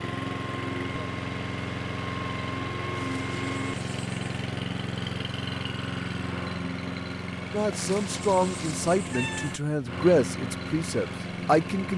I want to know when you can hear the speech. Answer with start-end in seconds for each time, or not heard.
7.5-11.9.